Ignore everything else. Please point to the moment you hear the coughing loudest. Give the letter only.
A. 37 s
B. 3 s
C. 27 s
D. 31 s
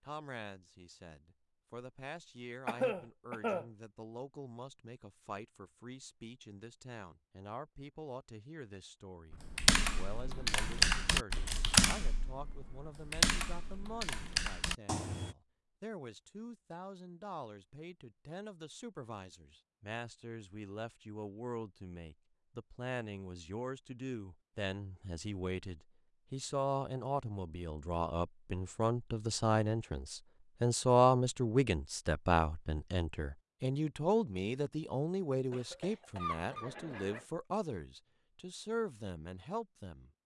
B.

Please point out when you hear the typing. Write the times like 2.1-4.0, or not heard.
9.3-15.3.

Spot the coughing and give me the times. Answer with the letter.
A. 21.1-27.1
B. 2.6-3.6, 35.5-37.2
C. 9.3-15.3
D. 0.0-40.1
B.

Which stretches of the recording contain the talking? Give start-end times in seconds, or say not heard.
0.0-40.1.